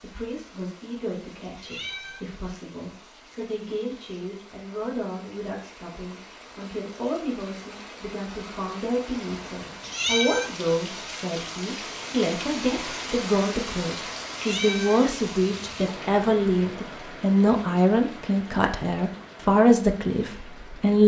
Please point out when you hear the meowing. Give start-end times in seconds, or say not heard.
1.6-2.2, 9.8-10.6, 14.3-15.9.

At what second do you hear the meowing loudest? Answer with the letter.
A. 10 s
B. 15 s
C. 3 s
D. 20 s
A.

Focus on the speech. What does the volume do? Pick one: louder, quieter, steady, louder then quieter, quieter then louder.
louder.